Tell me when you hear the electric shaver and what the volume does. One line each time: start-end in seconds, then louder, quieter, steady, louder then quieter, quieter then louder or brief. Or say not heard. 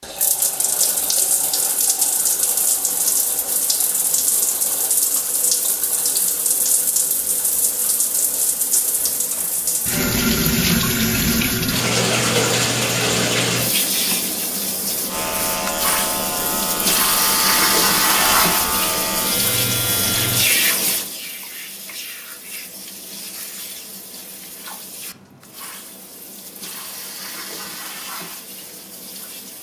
15.1-20.4 steady.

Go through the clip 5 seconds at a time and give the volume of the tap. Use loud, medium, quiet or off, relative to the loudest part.
medium, medium, loud, loud, medium, quiet.